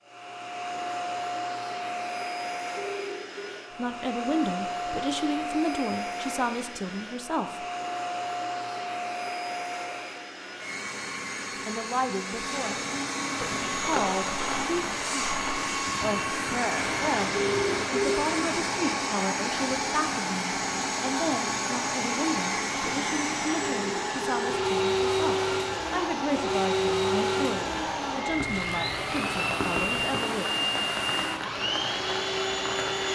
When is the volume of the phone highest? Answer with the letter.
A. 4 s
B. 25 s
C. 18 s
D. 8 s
C.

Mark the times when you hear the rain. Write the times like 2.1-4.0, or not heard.
13.4-33.1.